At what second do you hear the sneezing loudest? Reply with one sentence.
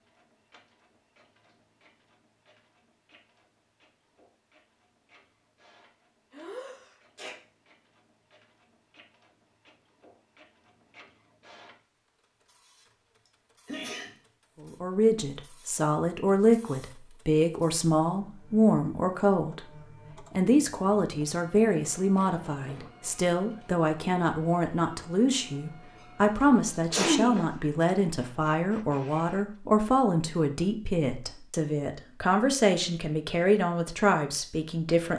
The volume of the sneezing peaks at 27 seconds.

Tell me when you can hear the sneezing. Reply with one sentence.
You can hear the sneezing from 6.3 to 7.3 s, from 13.7 to 14.2 s and from 26.9 to 27.4 s.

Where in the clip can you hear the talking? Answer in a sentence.
You can hear the talking from 14.6 to 35.1 s.